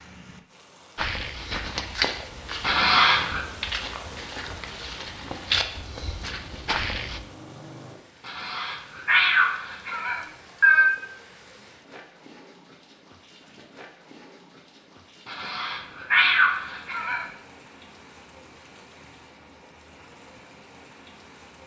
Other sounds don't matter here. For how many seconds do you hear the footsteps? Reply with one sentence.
The footsteps can be heard for 6 seconds in total.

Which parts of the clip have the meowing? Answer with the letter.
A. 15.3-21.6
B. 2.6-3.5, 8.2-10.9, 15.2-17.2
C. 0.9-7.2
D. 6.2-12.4
B.